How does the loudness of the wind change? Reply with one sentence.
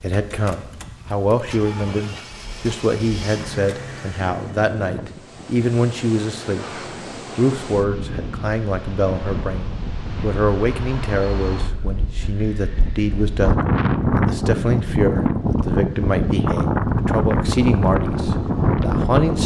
The volume of the wind goes up.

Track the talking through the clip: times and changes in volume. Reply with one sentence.
The talking can be heard from 0.0 to 19.4 s, at a steady volume.